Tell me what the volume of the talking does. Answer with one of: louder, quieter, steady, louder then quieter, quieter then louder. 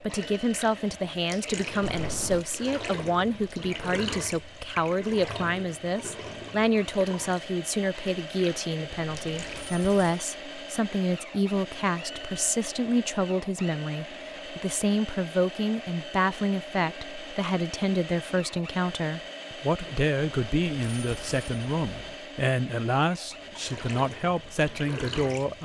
steady.